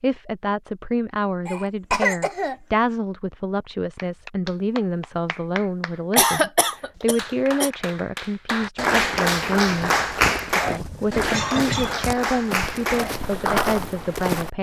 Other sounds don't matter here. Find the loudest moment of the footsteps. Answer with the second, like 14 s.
14 s.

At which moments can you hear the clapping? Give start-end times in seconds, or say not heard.
4.0-13.8.